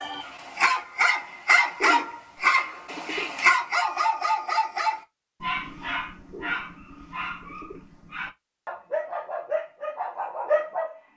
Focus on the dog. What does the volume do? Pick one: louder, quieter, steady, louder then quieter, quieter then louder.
quieter then louder.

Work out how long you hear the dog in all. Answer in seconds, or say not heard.
11 s.